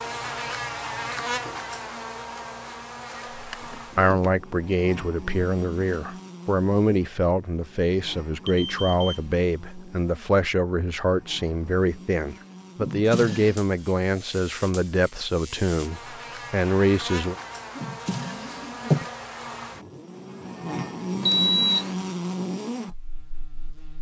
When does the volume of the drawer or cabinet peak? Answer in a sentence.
The volume of the drawer or cabinet peaks at 19 seconds.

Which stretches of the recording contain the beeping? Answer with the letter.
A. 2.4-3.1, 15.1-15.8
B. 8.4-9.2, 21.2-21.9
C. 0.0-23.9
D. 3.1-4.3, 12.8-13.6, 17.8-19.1
B.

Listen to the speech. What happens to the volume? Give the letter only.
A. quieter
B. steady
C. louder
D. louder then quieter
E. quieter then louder
B.